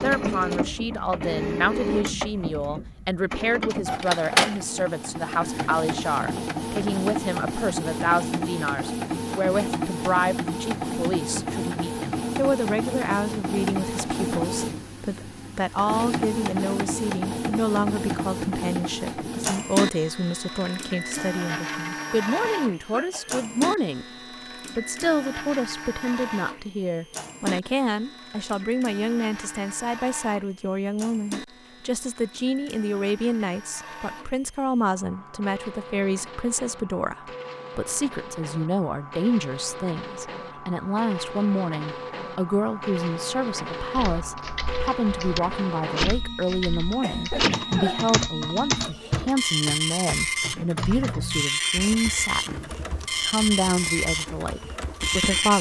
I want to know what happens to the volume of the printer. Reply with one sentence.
The volume of the printer goes down, then up.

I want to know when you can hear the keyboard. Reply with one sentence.
The keyboard can be heard from 44.0 to 55.5 s.